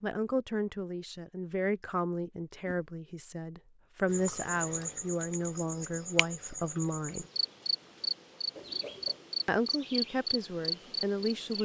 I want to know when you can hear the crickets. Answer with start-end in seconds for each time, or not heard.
4.0-11.6.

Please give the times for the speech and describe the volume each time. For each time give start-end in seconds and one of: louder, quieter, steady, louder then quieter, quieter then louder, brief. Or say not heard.
0.0-7.2 steady
9.4-11.6 brief.